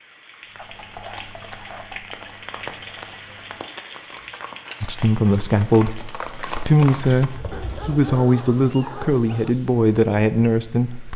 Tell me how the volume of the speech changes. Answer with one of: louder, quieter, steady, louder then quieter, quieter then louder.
steady.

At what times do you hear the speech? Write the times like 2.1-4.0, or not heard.
4.8-11.1.